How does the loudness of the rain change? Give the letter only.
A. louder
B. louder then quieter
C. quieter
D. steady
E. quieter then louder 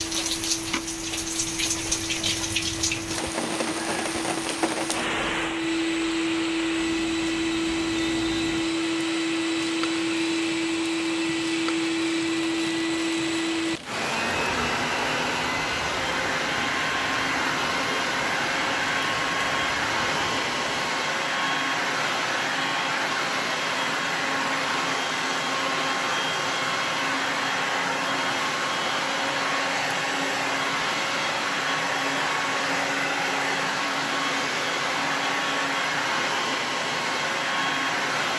C.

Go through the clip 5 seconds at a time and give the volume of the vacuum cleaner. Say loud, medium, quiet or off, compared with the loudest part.
medium, loud, loud, loud, loud, loud, loud, loud.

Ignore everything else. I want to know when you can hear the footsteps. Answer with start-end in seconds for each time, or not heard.
not heard.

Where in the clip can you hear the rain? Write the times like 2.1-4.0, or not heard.
0.0-20.9.